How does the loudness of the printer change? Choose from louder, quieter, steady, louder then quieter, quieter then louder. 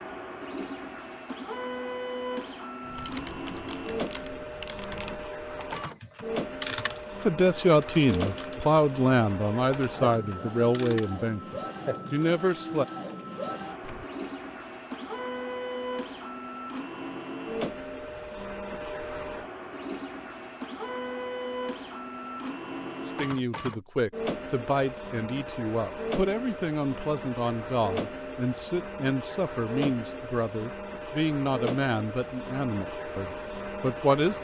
steady.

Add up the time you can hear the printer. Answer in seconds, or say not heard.
34 s.